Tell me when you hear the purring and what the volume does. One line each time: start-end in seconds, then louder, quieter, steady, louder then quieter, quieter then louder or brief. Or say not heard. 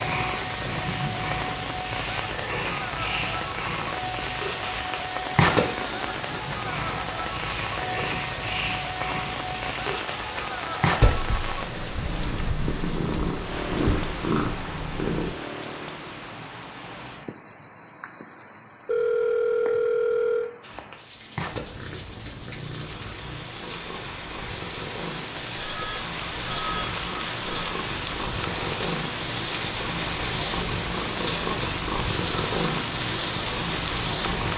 0.0-15.3 steady
20.6-34.5 louder.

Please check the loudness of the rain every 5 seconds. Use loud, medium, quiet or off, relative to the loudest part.
loud, loud, loud, medium, medium, loud, loud.